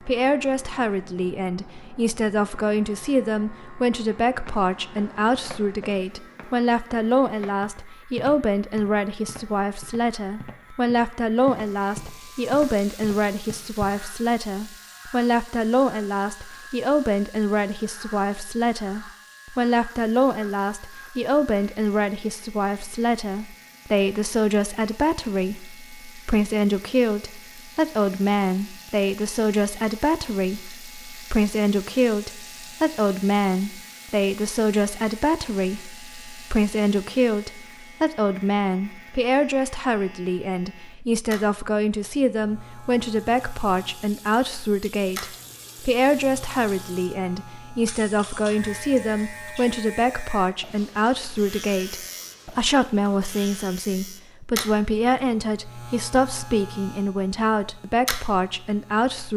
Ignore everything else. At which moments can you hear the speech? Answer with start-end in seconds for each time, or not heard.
0.0-59.3.